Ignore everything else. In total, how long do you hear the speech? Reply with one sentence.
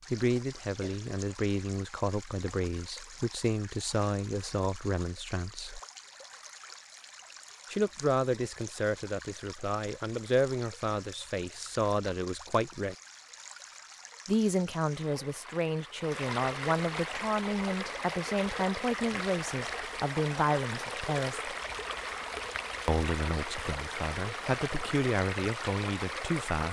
You can hear the speech for 22 seconds altogether.